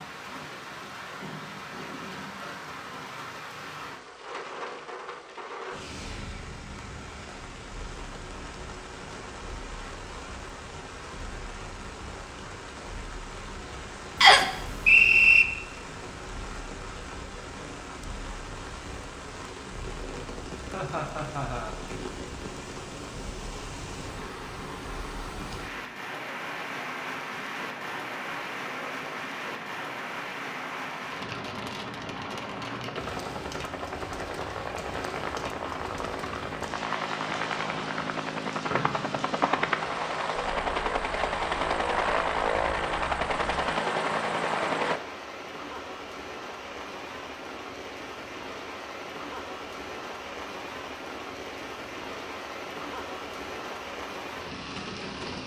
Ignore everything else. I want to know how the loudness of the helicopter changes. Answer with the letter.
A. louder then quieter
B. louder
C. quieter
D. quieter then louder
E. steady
B.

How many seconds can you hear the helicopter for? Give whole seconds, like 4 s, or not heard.
19 s.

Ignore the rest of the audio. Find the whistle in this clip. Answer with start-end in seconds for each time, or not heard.
14.2-15.4, 38.7-40.2.